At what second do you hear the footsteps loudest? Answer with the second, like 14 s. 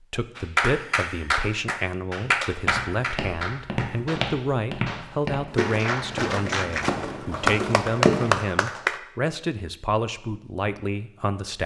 8 s.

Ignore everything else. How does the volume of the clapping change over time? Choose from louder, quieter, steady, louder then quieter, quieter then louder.
quieter then louder.